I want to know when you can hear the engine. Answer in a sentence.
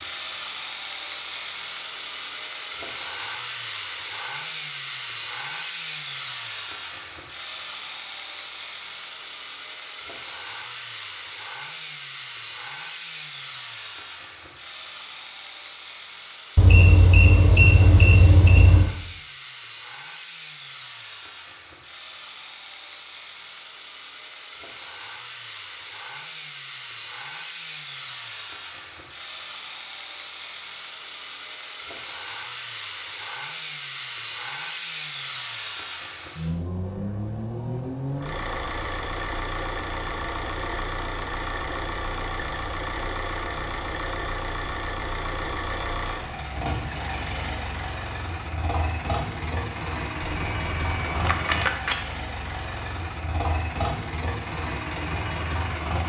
The engine can be heard from 0.0 to 56.0 s.